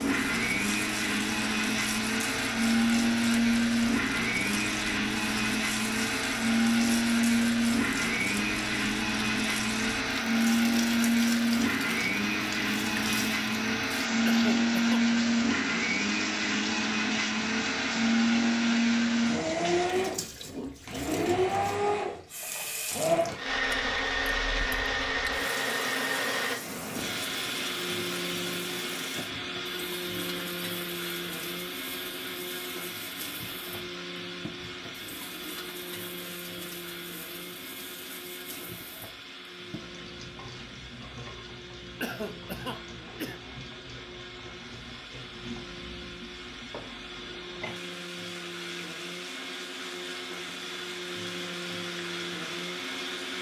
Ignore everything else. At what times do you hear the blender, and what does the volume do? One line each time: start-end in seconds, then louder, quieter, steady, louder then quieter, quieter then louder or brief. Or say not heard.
0.0-53.3 quieter.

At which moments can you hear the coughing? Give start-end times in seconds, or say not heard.
14.2-15.0, 42.0-43.4.